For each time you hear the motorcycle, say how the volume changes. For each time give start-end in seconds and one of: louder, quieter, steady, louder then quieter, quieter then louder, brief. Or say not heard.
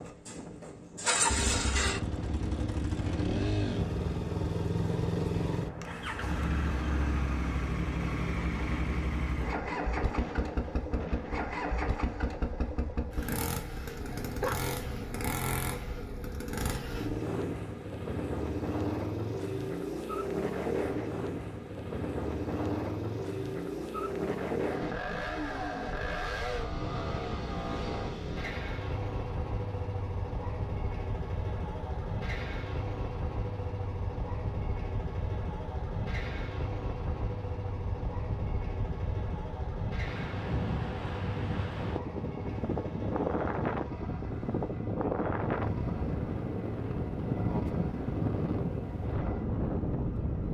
0.0-50.4 quieter.